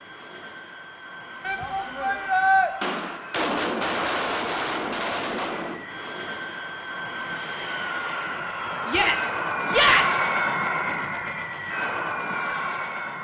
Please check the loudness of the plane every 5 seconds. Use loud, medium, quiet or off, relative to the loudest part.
quiet, loud, loud.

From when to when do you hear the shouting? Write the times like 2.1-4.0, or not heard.
1.4-2.7, 8.8-10.3.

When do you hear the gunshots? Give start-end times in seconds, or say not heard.
2.8-5.8.